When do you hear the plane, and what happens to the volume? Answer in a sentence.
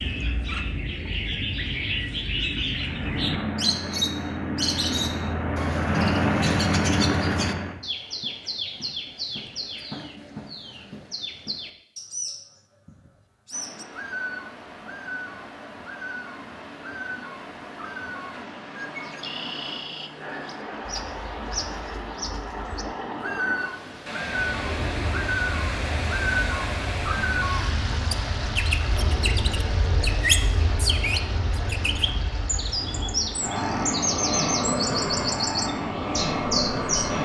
You can hear the plane from 2.8 to 7.8 s, getting louder; and from 24.4 to 37.2 s, getting louder.